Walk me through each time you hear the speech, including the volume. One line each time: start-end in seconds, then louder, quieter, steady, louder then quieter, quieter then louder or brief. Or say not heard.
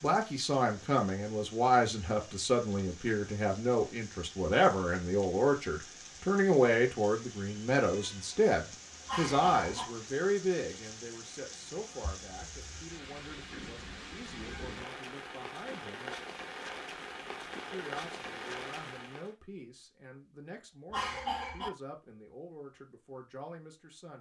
0.0-16.1 quieter
17.7-24.1 steady.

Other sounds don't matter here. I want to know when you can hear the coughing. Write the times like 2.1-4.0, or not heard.
9.1-9.8, 20.9-21.7.